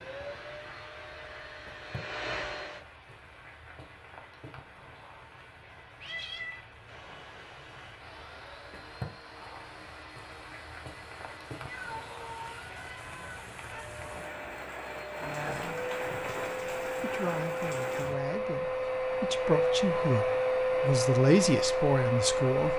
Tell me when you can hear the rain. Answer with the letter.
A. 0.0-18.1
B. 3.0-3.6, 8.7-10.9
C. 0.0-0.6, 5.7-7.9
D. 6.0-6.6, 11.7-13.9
A.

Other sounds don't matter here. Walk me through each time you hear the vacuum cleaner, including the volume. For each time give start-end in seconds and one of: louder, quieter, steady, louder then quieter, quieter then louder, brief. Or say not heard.
0.0-2.8 brief
6.8-22.7 louder.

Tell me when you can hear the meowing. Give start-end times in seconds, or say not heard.
6.0-6.6, 11.7-13.9.